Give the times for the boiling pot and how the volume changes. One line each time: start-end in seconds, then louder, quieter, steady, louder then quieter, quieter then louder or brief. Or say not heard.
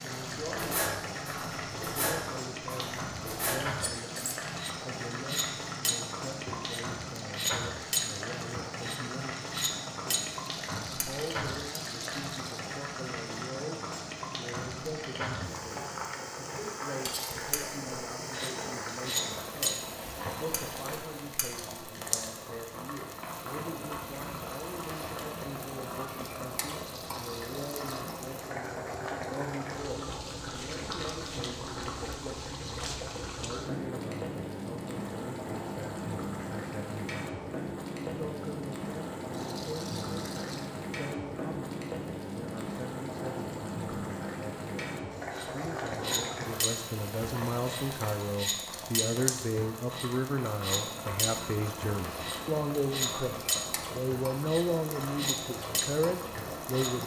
0.0-57.0 steady.